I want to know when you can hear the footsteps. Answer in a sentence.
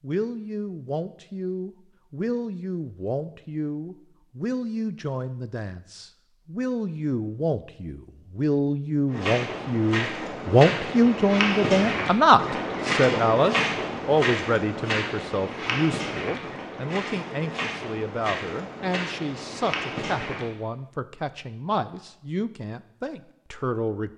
The footsteps can be heard from 9.1 to 20.4 s.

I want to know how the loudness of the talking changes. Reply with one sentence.
The loudness of the talking goes up, then down.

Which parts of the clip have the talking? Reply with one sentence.
The talking can be heard from 0.0 to 24.1 s.